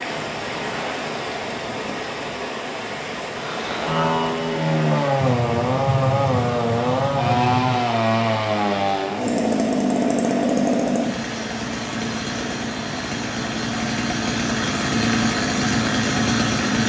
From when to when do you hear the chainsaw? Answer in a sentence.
The chainsaw can be heard from 3.3 to 16.8 s.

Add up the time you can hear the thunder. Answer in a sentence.
The thunder can be heard for 3 seconds in total.